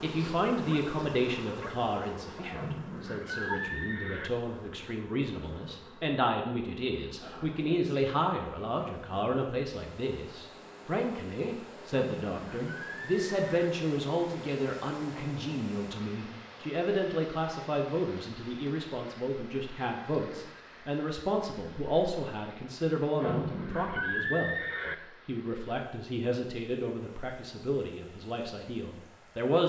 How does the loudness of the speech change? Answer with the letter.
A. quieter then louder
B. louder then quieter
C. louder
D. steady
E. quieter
D.